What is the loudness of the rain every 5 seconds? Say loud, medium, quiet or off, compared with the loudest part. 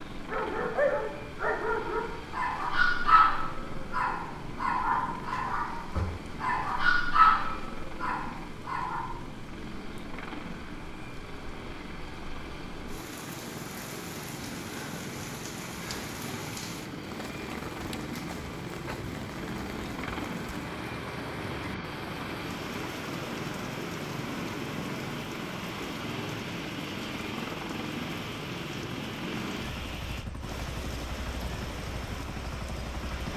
quiet, quiet, medium, loud, loud, loud, loud.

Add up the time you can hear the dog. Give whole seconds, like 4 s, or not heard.
9 s.